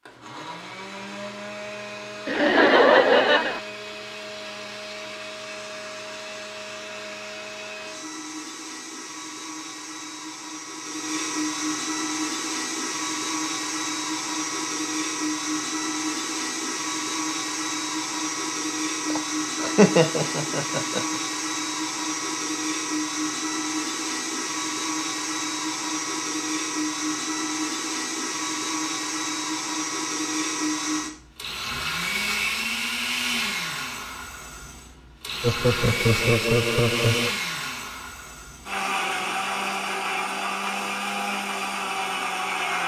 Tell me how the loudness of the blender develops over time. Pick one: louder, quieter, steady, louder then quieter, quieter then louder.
louder.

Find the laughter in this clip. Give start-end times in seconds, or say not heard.
2.2-3.6, 19.1-21.1, 35.4-37.3.